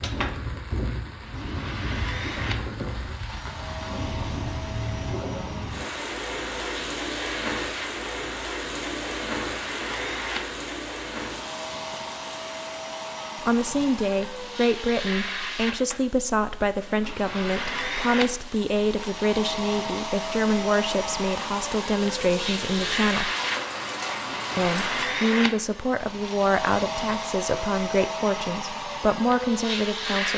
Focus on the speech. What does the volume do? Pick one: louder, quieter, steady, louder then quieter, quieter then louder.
steady.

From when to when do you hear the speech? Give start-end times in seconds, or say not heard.
13.4-23.3, 24.6-30.3.